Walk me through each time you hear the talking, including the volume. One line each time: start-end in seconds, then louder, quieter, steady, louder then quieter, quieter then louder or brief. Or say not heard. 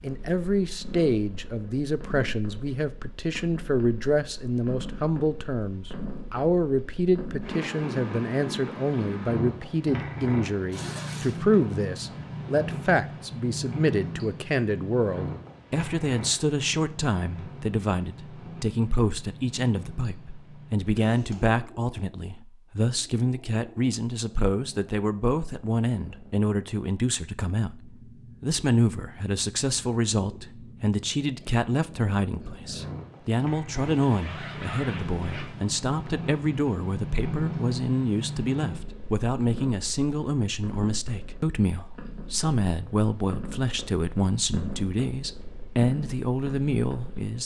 0.0-47.4 steady.